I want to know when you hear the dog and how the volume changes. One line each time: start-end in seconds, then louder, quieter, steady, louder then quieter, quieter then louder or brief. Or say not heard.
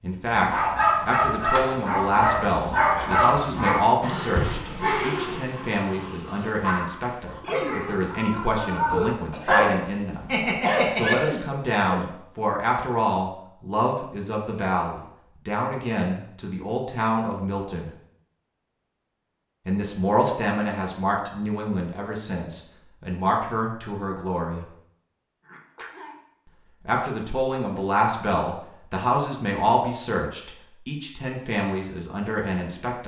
0.3-11.3 quieter then louder.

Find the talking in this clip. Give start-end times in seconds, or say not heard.
0.0-10.3, 10.9-17.9, 19.6-24.6, 26.9-33.0.